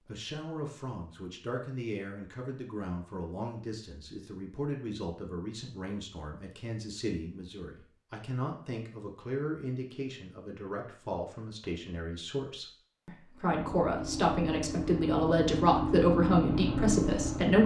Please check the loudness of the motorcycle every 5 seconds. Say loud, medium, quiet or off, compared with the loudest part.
off, off, medium, loud.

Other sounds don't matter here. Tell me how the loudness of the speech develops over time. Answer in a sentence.
The loudness of the speech goes up.